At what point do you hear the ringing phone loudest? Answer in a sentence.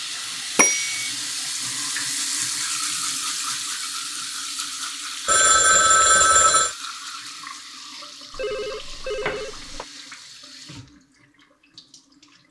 The volume of the ringing phone peaks at 6 seconds.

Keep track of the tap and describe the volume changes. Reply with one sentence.
The volume of the tap goes down.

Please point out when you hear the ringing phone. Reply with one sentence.
The ringing phone can be heard from 0.6 to 1.1 s, from 5.2 to 6.8 s and from 8.3 to 9.8 s.